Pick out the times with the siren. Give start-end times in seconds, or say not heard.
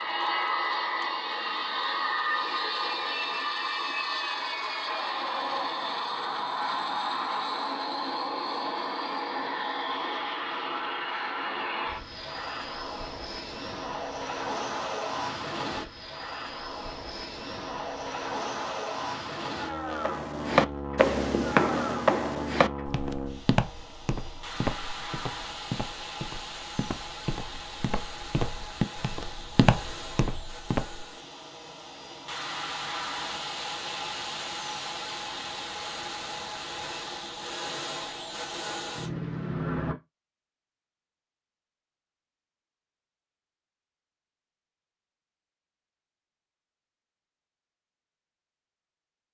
not heard.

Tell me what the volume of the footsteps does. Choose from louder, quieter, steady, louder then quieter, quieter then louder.
quieter then louder.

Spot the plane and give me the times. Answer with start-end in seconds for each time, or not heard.
0.0-40.0.